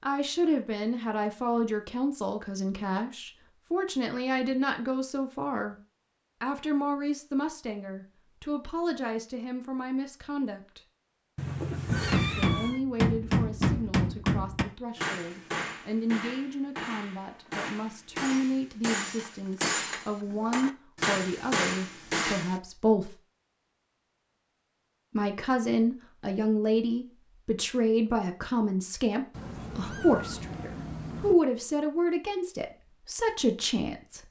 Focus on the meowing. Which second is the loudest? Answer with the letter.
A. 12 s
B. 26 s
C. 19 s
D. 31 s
A.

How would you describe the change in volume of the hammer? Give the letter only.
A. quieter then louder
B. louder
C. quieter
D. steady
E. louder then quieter
A.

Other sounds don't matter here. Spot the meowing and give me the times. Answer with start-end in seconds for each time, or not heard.
11.3-12.8, 29.3-31.4.